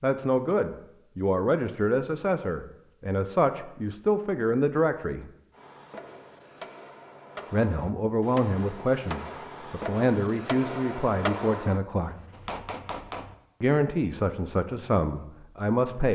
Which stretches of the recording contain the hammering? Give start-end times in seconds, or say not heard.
5.5-13.3.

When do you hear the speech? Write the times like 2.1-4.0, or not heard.
0.0-5.2, 7.5-12.2, 13.6-16.1.